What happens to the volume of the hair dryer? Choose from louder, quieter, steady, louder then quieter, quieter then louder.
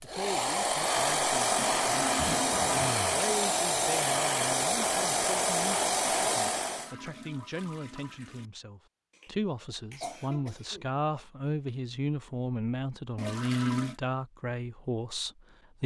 steady.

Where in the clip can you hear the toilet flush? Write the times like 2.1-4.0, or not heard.
1.6-2.7, 6.5-8.5, 13.2-14.0.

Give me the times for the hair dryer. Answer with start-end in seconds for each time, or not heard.
0.0-7.0.